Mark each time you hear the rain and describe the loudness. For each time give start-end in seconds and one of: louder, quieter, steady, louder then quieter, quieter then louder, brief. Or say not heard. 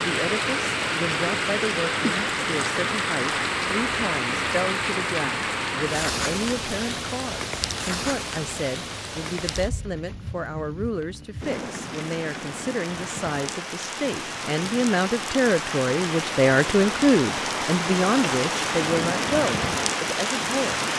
0.0-20.9 quieter then louder.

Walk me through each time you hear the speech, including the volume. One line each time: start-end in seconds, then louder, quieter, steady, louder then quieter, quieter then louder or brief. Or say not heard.
0.0-20.9 louder.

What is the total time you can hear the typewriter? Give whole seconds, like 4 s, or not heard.
not heard.